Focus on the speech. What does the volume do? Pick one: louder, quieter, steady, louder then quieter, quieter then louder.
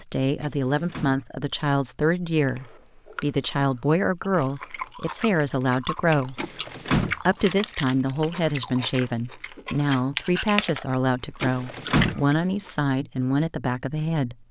steady.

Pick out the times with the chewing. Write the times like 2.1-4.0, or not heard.
2.4-12.9.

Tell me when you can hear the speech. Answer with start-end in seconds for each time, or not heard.
0.0-6.4, 7.2-14.3.